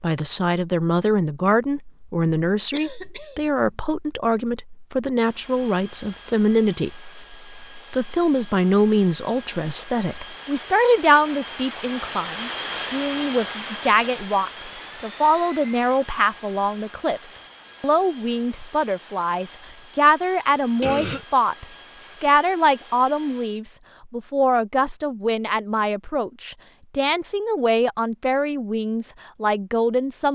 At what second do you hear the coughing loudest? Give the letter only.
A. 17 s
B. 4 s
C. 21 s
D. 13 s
C.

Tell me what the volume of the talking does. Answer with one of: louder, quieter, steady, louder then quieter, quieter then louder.
steady.